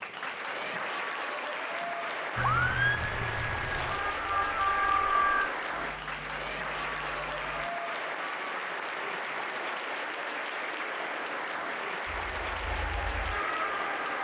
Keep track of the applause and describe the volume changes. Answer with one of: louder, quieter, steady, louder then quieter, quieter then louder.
steady.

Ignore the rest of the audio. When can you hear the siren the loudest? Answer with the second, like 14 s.
5 s.